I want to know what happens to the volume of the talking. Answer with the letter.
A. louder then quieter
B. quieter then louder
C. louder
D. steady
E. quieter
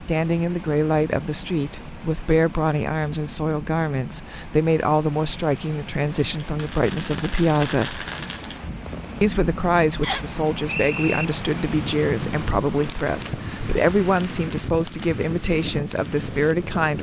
D.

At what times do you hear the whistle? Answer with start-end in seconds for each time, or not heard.
10.0-11.2.